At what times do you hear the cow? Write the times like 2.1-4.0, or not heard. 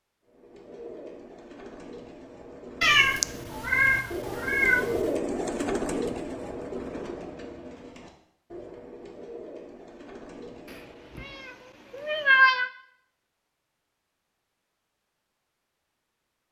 not heard.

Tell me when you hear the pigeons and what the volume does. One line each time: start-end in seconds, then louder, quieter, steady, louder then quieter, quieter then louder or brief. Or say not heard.
0.2-11.3 louder then quieter.